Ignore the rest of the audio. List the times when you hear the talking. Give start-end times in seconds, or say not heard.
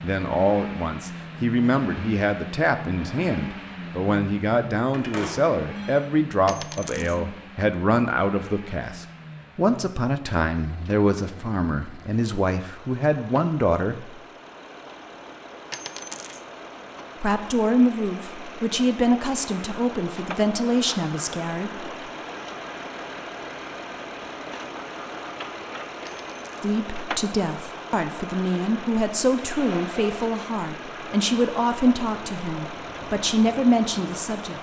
0.0-14.2, 17.2-21.9, 26.6-34.5.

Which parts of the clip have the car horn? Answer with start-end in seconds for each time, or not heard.
not heard.